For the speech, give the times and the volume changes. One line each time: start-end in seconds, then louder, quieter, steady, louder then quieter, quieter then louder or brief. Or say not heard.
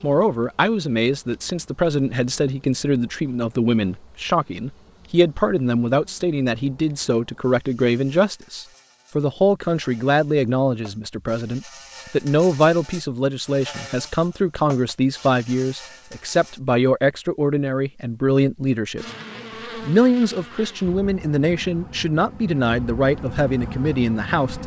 0.0-19.1 steady
19.8-24.6 steady.